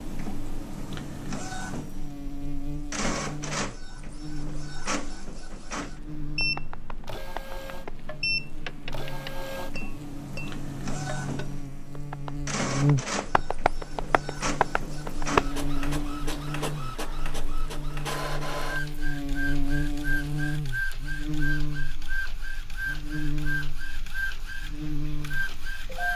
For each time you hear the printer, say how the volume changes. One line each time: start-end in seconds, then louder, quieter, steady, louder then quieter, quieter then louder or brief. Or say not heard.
0.0-26.1 steady.